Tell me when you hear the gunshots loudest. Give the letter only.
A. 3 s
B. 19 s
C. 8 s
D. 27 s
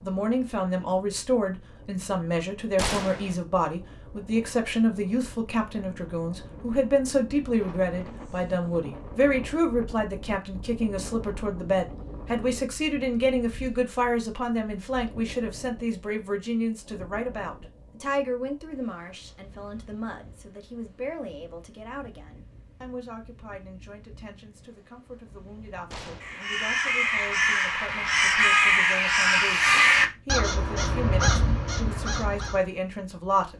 A.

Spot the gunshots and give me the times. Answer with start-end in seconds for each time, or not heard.
2.8-3.4, 25.9-26.4.